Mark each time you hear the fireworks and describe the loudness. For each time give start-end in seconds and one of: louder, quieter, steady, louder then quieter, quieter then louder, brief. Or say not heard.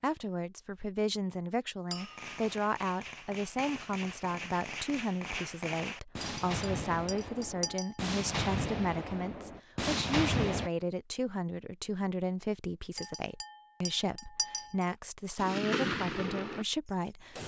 1.9-10.7 louder
15.3-17.4 brief.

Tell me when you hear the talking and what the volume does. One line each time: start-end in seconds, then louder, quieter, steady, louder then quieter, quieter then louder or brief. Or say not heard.
0.0-17.4 steady.